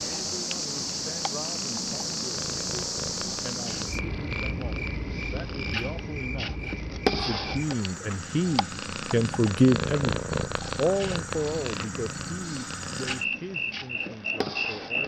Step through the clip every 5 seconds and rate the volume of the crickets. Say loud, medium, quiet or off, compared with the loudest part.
loud, medium, loud.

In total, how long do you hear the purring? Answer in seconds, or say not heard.
15 s.